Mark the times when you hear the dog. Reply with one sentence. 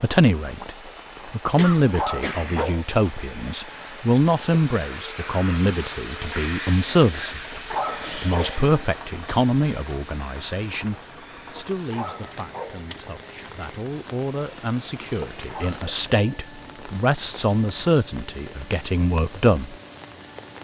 The dog can be heard from 1.9 to 2.9 s, from 7.7 to 8.6 s, from 11.9 to 12.8 s and from 15.4 to 16.4 s.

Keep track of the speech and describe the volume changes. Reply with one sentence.
The volume of the speech goes down, then up.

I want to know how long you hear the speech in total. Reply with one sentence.
You can hear the speech for 20 seconds altogether.